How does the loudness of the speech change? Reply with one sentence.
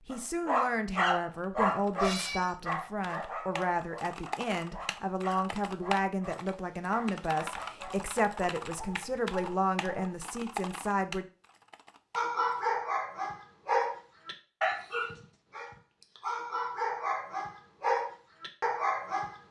The loudness of the speech stays about the same.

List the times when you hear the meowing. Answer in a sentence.
You can hear the meowing from 1.9 to 2.5 s.